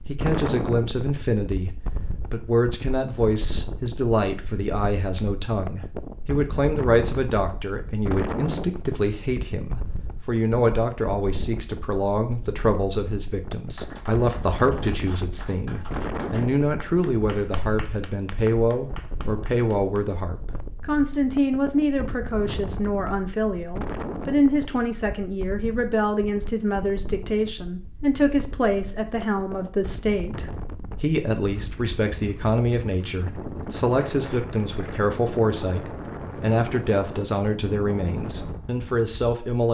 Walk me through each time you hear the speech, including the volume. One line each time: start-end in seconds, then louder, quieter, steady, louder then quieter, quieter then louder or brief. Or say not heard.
0.1-39.7 steady.